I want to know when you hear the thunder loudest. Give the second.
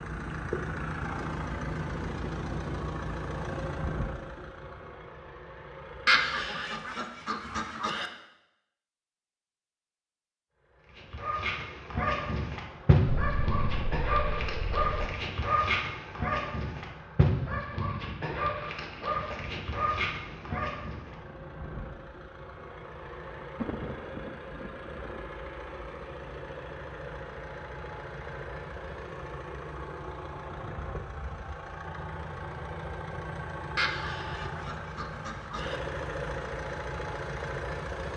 24 s.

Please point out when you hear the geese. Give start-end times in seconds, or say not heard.
6.0-8.1, 33.8-35.8.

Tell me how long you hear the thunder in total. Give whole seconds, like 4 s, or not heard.
4 s.